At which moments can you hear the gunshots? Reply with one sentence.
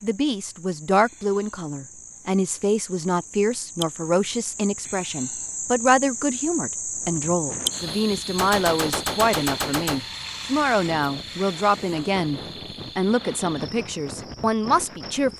You can hear the gunshots from 8.3 to 10.1 s.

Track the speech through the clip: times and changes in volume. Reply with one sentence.
You can hear the speech from 0.0 to 15.3 s, at a steady volume.